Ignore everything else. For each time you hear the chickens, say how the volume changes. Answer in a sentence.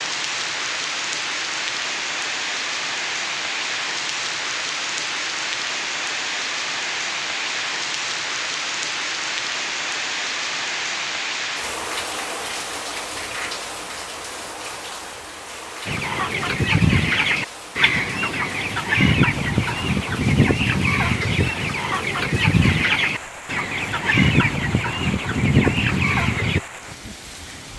You can hear the chickens from 15.8 to 26.6 s, at a steady volume.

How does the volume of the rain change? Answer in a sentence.
The volume of the rain goes down.